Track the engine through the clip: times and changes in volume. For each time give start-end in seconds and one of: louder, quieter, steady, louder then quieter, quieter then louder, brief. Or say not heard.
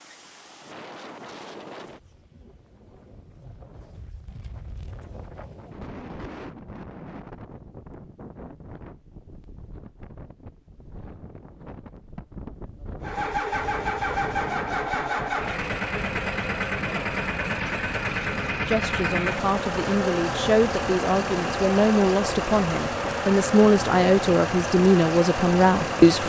13.0-26.2 steady.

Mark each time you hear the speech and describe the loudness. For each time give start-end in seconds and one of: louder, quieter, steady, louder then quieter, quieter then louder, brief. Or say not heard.
18.6-26.2 louder.